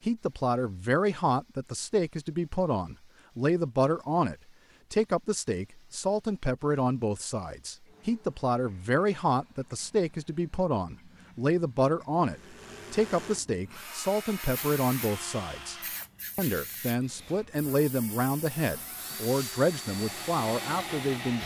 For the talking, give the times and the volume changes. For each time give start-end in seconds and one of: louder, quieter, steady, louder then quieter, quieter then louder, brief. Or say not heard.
0.1-15.8 steady
16.4-21.4 steady.